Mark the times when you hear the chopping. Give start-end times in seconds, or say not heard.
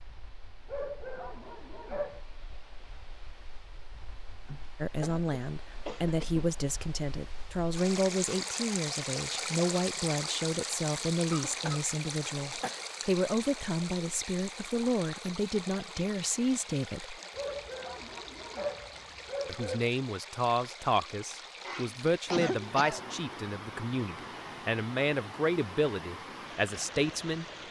not heard.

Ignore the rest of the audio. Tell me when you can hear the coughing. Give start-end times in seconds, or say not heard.
4.5-6.5, 11.3-12.8, 21.6-23.1.